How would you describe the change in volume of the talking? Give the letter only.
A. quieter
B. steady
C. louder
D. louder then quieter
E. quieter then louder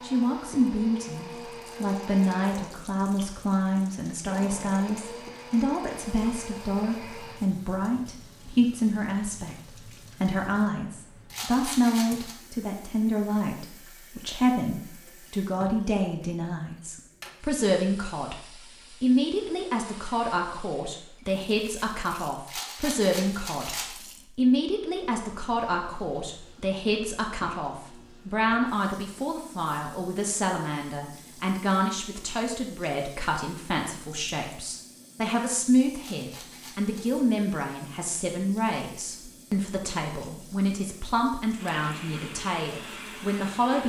B.